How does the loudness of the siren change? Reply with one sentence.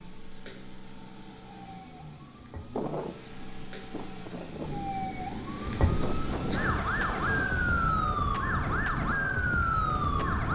The loudness of the siren goes up.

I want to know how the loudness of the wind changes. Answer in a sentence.
The loudness of the wind goes up.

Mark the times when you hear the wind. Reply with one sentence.
The wind can be heard from 2.7 to 10.5 s.